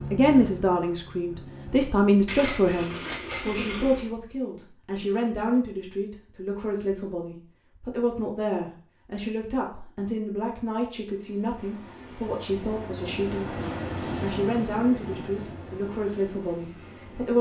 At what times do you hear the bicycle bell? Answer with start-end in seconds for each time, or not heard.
2.2-4.0.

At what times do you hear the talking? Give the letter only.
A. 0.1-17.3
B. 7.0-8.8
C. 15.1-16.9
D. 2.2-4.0
A.